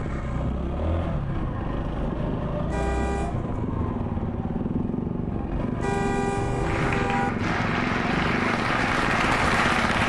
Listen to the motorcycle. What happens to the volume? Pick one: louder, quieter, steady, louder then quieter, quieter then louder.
steady.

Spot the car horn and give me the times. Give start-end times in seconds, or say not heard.
2.7-3.4, 5.8-7.3.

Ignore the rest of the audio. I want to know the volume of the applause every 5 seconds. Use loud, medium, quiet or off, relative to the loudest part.
off, loud.